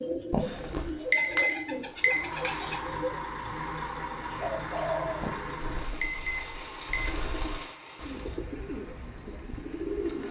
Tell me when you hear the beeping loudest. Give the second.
1 s.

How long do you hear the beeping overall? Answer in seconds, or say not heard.
4 s.